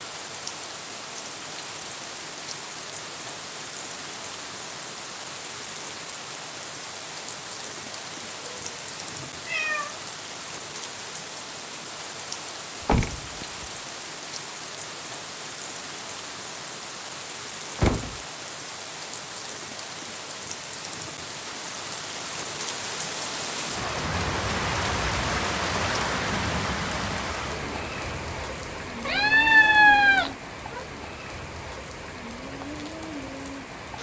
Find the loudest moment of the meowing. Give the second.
30 s.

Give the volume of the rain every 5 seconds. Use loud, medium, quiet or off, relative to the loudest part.
medium, medium, medium, medium, loud, loud, medium.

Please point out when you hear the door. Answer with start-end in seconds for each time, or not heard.
12.8-13.7, 17.8-18.2.